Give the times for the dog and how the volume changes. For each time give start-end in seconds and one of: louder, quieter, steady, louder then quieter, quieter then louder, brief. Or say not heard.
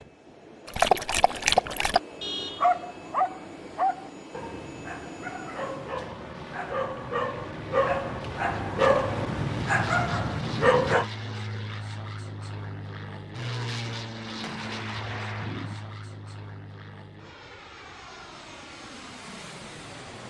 0.7-11.1 quieter then louder.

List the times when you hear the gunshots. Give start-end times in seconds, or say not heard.
14.4-15.9.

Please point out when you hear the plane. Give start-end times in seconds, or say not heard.
0.0-20.2.